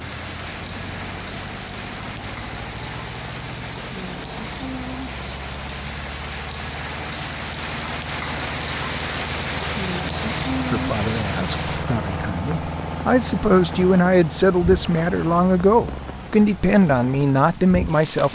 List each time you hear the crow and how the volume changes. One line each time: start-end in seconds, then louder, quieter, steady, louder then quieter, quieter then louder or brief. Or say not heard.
not heard.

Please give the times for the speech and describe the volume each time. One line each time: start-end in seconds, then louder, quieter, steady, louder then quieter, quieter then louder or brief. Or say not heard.
10.7-18.3 louder.